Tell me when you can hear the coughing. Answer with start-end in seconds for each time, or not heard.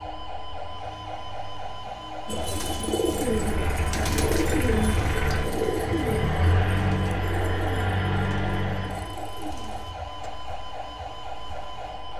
not heard.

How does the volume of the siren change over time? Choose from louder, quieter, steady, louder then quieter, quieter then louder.
steady.